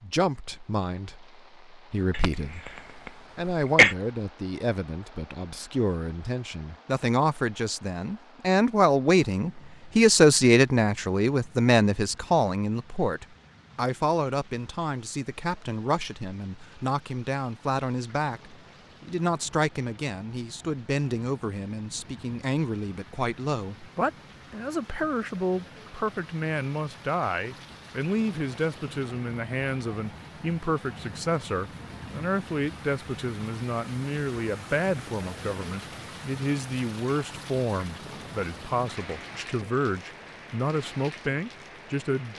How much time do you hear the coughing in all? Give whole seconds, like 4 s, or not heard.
2 s.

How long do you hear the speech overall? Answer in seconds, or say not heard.
42 s.